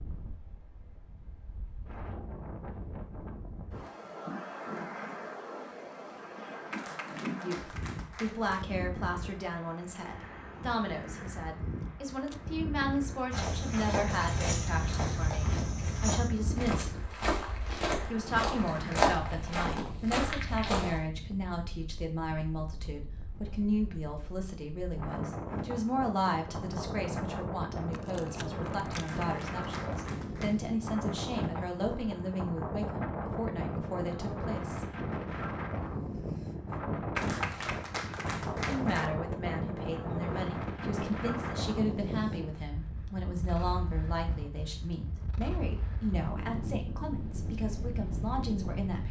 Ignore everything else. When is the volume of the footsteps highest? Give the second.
19 s.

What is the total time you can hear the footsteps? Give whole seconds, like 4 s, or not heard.
8 s.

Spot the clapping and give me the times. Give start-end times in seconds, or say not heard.
6.7-8.7, 28.9-30.6, 37.1-39.1.